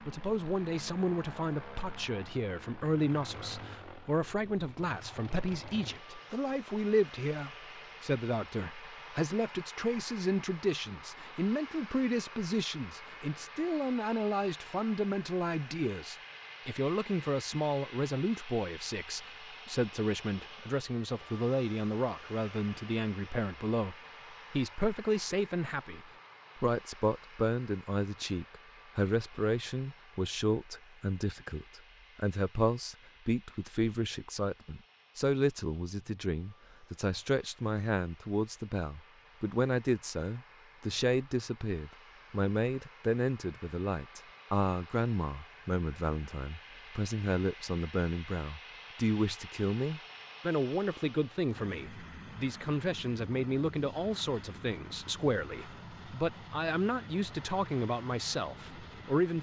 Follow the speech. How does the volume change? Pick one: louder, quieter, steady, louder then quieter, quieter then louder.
steady.